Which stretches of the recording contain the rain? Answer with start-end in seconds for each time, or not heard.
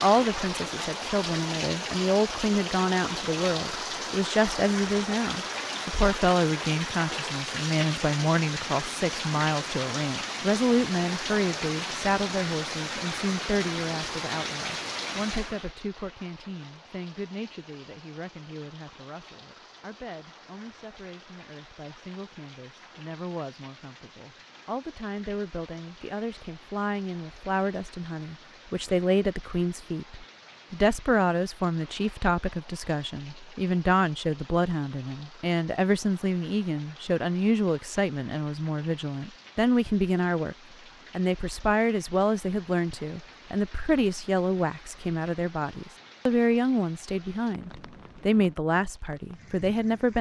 0.0-50.1.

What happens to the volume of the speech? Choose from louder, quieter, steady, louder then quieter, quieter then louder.
quieter then louder.